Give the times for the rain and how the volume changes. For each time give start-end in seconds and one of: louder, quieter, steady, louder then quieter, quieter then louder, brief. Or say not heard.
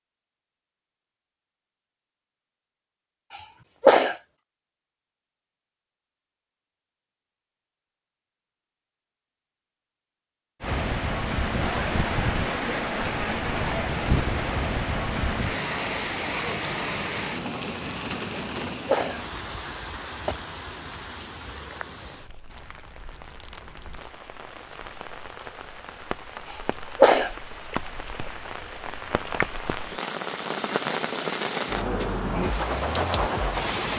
10.6-33.9 quieter then louder.